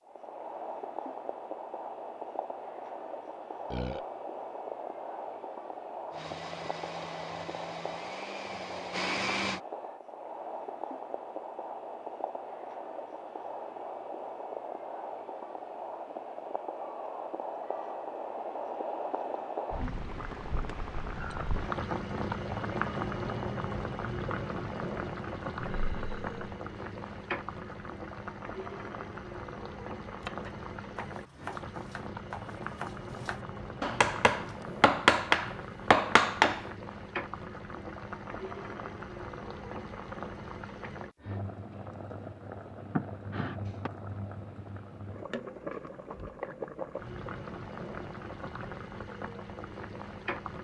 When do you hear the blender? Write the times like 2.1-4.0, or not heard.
6.1-9.6.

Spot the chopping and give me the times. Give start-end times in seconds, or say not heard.
30.1-36.6.